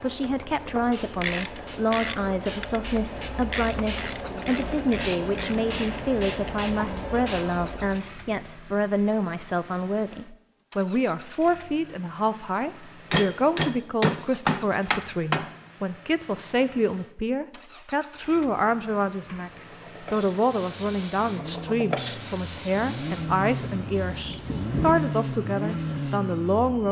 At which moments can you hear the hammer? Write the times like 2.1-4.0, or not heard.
13.1-15.5.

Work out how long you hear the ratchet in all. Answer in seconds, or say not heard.
6 s.